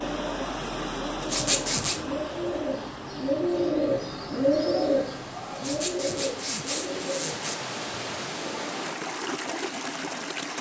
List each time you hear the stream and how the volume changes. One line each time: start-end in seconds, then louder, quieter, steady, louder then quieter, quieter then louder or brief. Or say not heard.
0.0-10.5 quieter then louder.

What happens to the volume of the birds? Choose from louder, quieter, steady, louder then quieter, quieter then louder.
louder then quieter.